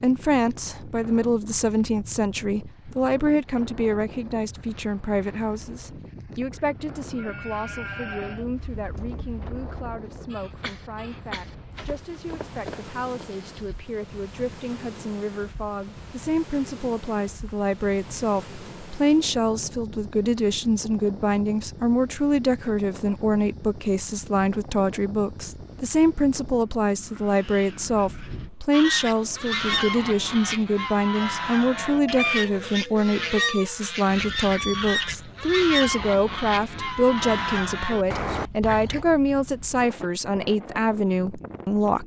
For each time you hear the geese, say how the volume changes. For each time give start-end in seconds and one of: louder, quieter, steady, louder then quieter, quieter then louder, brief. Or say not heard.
28.7-39.0 steady.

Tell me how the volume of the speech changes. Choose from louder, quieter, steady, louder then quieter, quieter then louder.
quieter then louder.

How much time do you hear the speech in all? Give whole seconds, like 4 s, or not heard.
42 s.